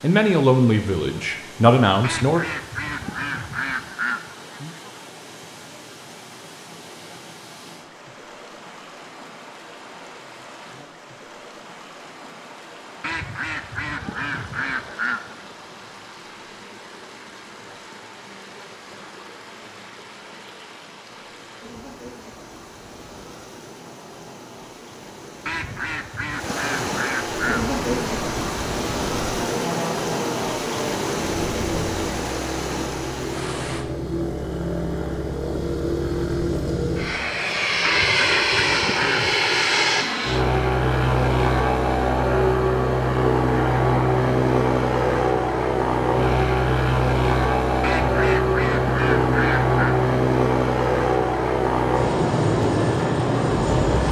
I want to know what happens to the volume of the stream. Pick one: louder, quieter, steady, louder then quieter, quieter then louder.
louder.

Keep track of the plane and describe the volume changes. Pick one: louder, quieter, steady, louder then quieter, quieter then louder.
louder.